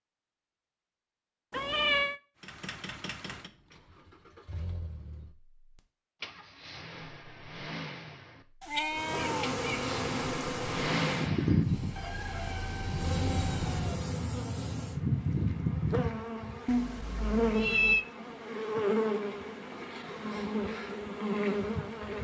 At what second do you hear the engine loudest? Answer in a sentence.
The volume of the engine peaks at 11 seconds.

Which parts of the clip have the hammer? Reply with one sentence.
You can't hear the hammer here.